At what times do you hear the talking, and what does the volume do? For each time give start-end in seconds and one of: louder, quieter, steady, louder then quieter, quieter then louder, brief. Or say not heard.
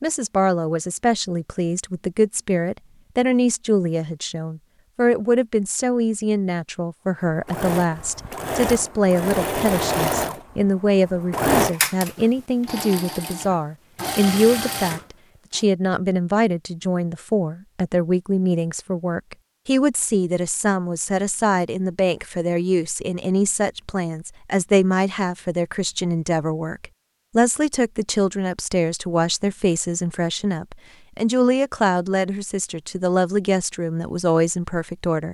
0.0-35.3 steady.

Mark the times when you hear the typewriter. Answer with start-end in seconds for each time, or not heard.
not heard.